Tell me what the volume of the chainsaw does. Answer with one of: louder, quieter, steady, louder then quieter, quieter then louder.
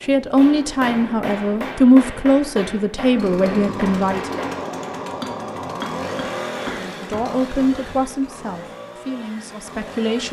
quieter.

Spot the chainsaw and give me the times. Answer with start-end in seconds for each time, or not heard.
3.1-10.2.